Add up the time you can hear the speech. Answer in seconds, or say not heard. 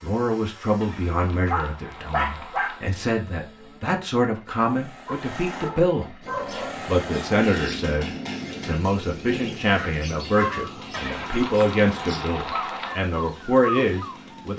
14 s.